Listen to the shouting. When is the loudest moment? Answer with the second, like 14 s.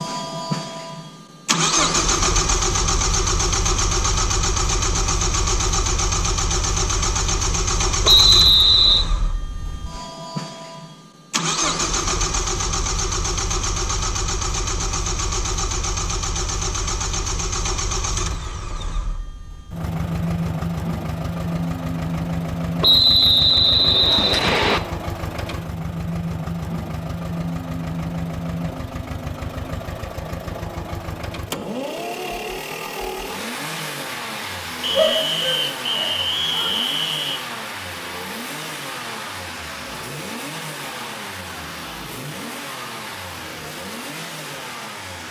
35 s.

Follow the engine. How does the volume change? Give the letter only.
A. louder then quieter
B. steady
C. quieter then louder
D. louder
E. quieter
E.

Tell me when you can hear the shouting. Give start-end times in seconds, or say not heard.
34.9-36.8.